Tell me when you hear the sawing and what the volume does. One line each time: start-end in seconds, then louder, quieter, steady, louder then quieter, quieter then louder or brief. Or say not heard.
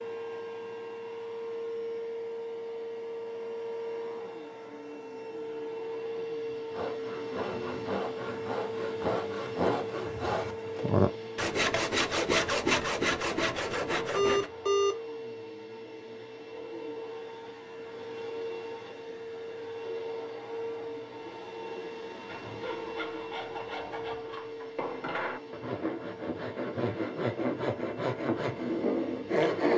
6.7-14.5 louder
22.2-29.7 louder.